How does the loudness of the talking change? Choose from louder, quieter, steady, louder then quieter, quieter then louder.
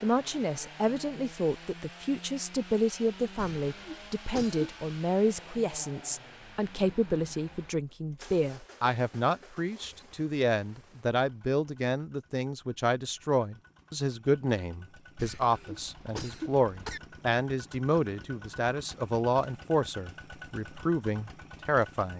steady.